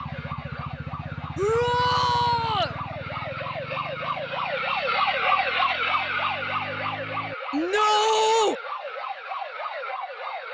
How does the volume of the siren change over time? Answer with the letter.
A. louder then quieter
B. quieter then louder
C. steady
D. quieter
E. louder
A.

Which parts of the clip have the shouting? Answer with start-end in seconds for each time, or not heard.
1.4-2.8, 7.5-8.6.